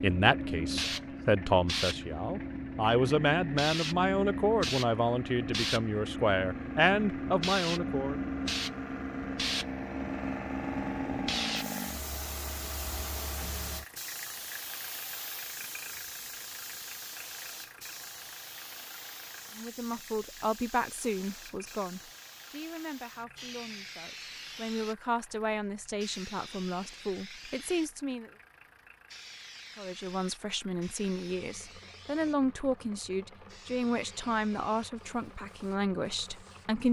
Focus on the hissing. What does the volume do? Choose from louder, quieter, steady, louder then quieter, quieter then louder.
quieter.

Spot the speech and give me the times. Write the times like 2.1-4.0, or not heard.
0.0-8.2, 19.6-28.3, 29.8-36.8.